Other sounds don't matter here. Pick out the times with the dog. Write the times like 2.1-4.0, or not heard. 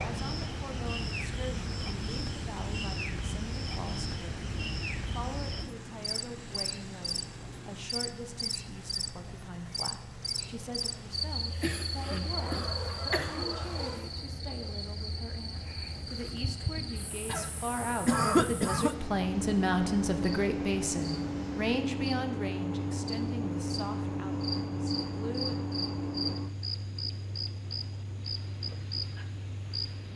12.3-14.1.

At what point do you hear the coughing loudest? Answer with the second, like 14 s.
18 s.